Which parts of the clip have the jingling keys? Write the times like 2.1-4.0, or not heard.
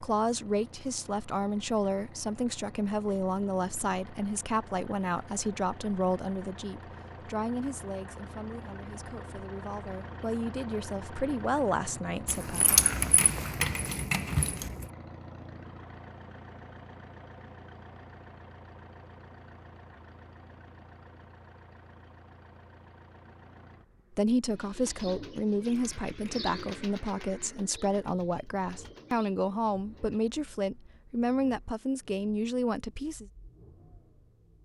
12.2-14.8, 25.6-26.9.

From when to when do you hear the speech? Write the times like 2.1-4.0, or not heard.
0.0-12.8, 24.1-33.2.